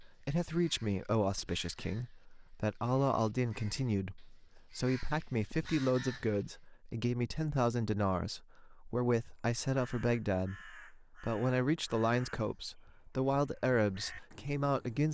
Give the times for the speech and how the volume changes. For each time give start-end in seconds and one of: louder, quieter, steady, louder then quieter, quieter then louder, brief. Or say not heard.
0.0-15.1 steady.